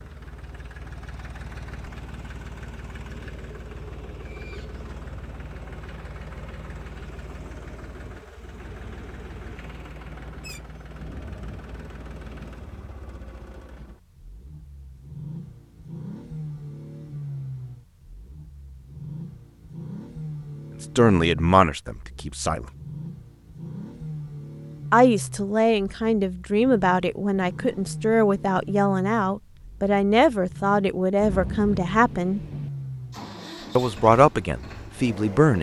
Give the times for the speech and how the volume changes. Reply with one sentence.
You can hear the speech briefly from 20.8 to 22.7 s; from 24.9 to 32.4 s, at a steady volume; and briefly from 33.8 to 35.5 s.